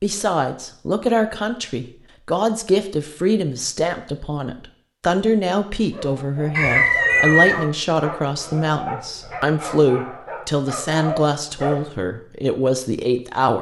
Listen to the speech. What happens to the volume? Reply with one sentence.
The loudness of the speech stays about the same.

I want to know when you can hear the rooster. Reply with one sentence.
You can hear the rooster from 6.5 to 7.6 s.